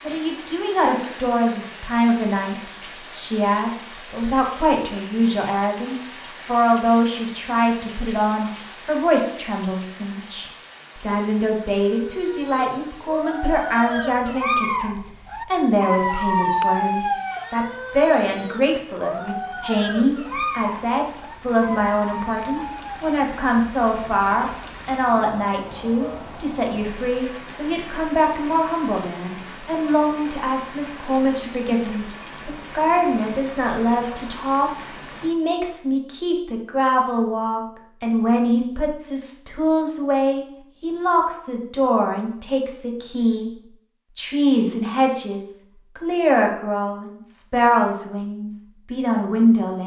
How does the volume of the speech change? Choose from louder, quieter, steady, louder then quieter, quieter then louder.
steady.